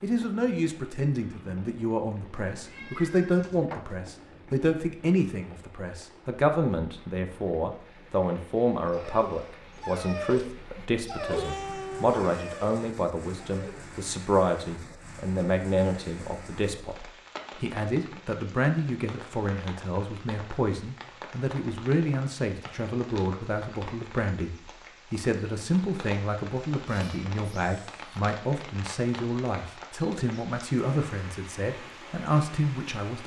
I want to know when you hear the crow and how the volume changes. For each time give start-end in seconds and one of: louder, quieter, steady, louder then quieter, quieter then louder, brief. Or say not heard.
not heard.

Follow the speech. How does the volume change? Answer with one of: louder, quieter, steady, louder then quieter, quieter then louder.
steady.